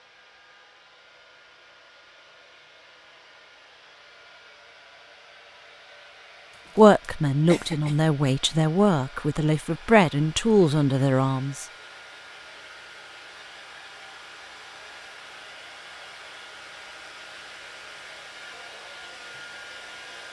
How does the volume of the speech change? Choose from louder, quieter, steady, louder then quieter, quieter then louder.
steady.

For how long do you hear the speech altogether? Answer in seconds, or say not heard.
5 s.